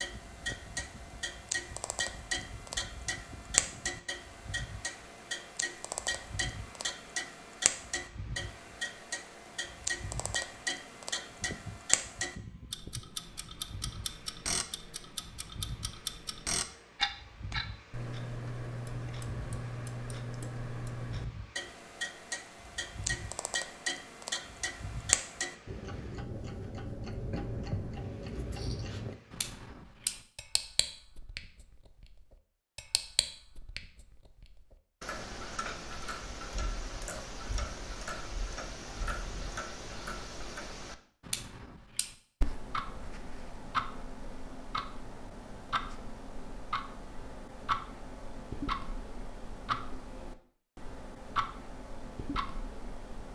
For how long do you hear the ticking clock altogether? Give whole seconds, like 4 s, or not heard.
53 s.